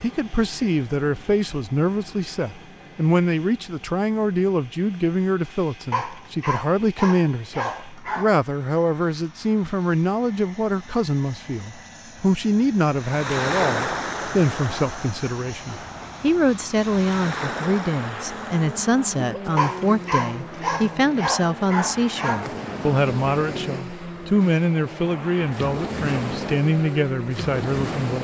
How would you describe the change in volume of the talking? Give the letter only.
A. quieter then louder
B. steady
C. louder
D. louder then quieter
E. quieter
B.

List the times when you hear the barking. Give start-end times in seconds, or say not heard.
5.9-8.3, 19.6-22.4.